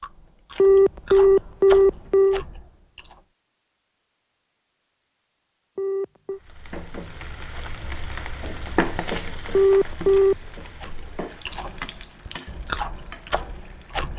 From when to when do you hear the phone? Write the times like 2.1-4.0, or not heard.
0.6-2.4, 5.8-6.4, 9.5-10.3.